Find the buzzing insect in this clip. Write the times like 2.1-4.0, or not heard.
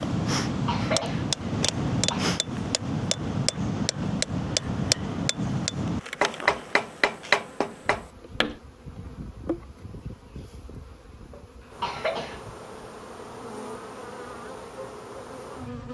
0.1-15.8.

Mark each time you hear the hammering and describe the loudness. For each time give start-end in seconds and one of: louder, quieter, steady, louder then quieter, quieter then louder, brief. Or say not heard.
0.0-8.6 steady.